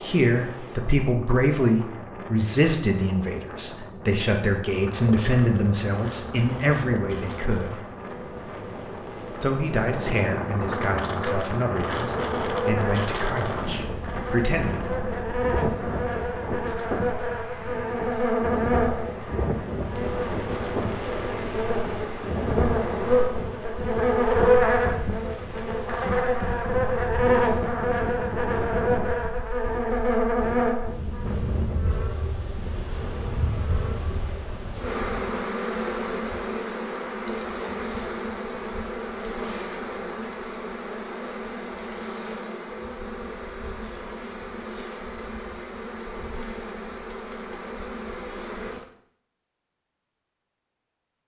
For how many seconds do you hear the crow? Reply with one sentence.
You can't hear the crow here.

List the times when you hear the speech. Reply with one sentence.
The speech can be heard from 0.0 to 7.8 s and from 9.3 to 14.9 s.